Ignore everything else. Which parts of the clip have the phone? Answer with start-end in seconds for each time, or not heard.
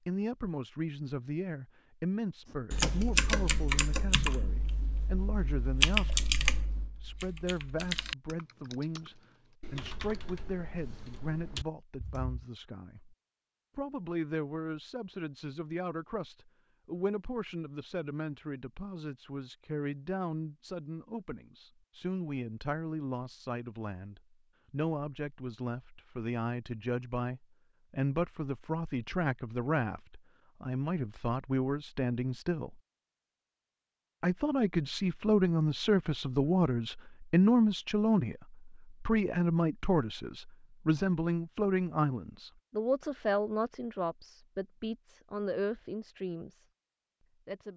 not heard.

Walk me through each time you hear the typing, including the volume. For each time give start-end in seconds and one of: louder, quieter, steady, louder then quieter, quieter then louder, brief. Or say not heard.
2.7-12.3 quieter.